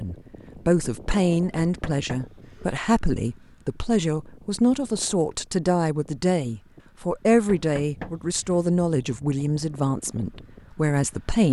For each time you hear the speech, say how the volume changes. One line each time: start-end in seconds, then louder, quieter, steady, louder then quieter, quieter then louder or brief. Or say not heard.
0.0-11.4 steady.